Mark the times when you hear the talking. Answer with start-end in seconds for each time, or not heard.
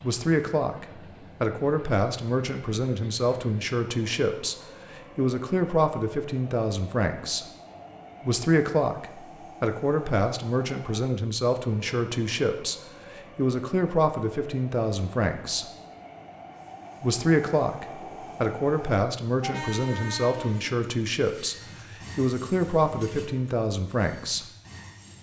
0.0-7.5, 8.2-15.7, 17.0-24.4.